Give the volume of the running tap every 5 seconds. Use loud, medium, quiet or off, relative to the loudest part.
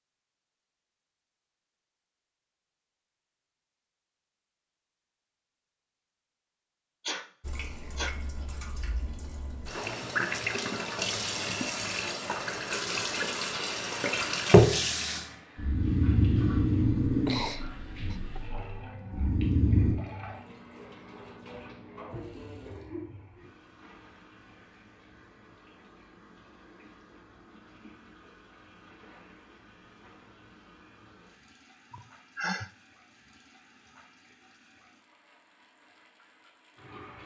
off, quiet, loud, quiet, quiet, quiet, quiet, quiet.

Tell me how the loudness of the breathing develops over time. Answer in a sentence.
The loudness of the breathing goes down, then up.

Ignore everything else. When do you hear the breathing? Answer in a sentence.
You can hear the breathing from 15.6 to 19.9 s.